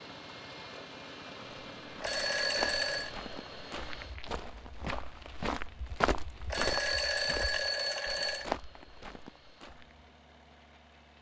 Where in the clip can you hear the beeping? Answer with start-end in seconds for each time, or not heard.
2.0-3.1, 6.5-8.5.